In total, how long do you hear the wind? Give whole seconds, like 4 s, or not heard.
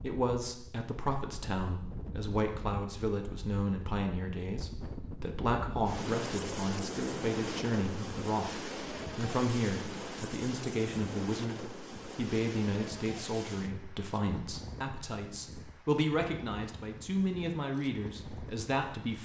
19 s.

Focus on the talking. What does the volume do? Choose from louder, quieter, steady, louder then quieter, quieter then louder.
steady.